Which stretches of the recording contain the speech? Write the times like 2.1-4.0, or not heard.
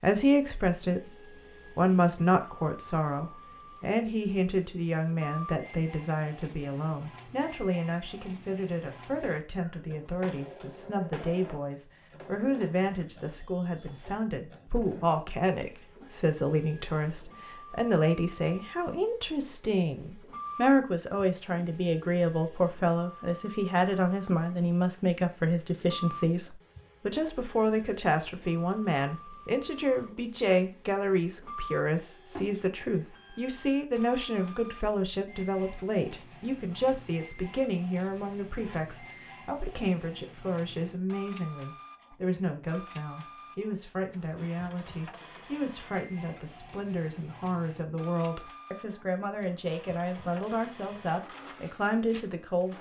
0.0-52.7.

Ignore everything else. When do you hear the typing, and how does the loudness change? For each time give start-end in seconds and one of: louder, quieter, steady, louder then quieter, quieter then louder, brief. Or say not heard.
not heard.